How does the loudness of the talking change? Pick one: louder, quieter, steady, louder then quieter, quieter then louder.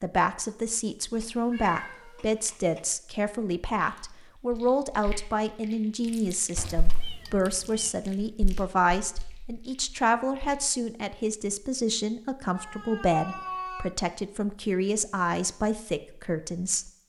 steady.